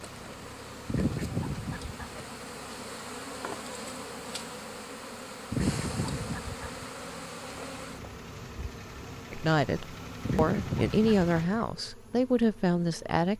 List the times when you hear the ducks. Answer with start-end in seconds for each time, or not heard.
0.8-2.2, 5.5-6.9, 10.2-11.6.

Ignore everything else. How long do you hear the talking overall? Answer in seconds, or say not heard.
4 s.